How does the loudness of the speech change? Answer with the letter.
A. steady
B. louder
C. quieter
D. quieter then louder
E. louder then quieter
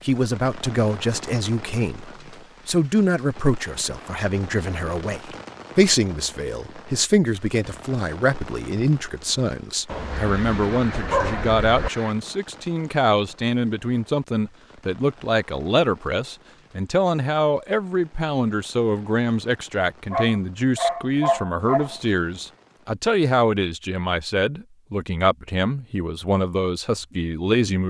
A.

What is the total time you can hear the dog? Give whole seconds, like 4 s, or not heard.
4 s.